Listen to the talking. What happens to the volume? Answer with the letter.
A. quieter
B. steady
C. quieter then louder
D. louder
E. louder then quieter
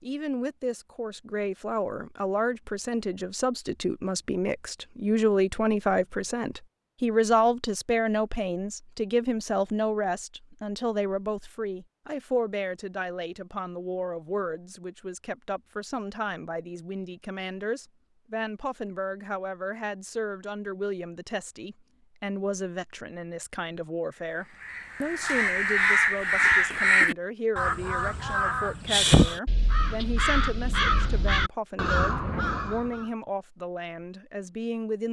A.